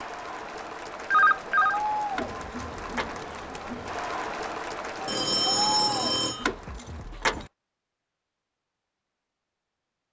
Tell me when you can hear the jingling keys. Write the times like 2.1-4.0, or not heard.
2.1-3.1, 6.4-7.5.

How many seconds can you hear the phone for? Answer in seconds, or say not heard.
2 s.